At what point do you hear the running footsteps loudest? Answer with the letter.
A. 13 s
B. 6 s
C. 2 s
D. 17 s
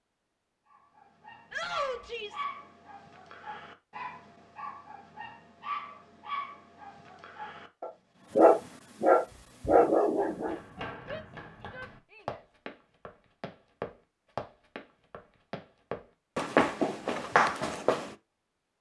D.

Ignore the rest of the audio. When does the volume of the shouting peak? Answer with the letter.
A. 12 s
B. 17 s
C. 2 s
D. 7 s
C.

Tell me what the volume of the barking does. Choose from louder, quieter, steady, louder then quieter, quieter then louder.
louder.